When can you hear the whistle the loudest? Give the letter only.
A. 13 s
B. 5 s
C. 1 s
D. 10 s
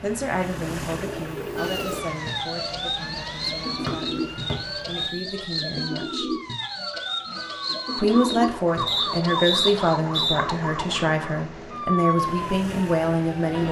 D.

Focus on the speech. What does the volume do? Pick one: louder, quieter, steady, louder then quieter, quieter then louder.
quieter then louder.